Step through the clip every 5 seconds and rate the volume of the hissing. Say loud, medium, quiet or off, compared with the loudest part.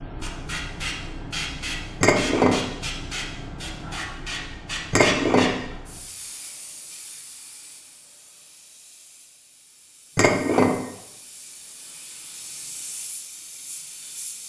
loud, loud, medium.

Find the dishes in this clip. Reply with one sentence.
The dishes can be heard from 2.0 to 2.6 s, from 4.9 to 5.5 s and from 10.2 to 10.8 s.